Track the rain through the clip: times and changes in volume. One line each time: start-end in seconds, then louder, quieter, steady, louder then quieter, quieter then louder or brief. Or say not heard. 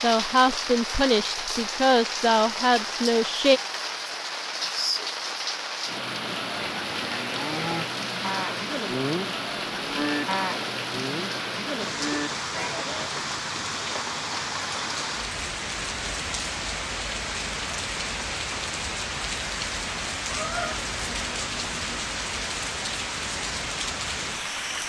0.0-24.8 steady.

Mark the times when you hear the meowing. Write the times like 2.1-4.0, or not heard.
20.2-22.0.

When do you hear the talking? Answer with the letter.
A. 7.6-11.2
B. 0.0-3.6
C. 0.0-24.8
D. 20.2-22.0
B.